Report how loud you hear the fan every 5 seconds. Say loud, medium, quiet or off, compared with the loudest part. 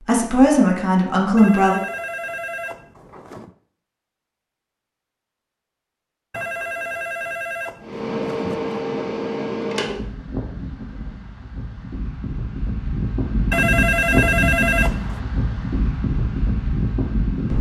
off, loud, loud, loud.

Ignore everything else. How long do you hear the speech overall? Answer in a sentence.
You can hear the speech for 2 seconds altogether.